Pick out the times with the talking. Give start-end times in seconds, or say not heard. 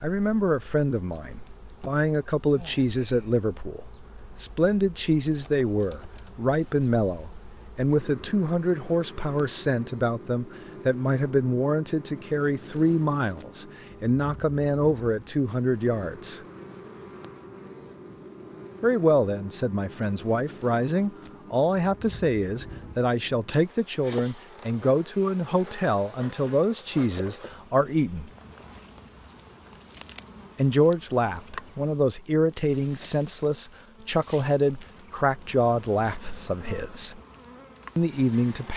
0.0-16.4, 18.8-28.3, 30.6-37.2, 38.0-38.7.